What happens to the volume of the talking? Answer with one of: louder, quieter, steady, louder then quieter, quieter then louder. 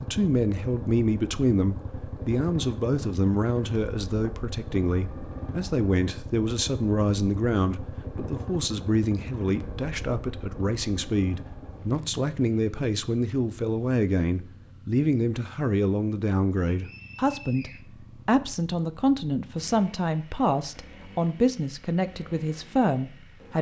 steady.